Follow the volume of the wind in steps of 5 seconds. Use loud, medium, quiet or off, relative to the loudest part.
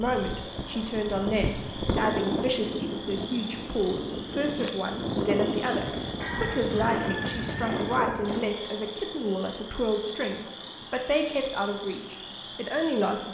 loud, loud, off.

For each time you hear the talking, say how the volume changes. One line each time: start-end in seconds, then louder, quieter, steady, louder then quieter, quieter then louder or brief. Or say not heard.
0.0-13.3 steady.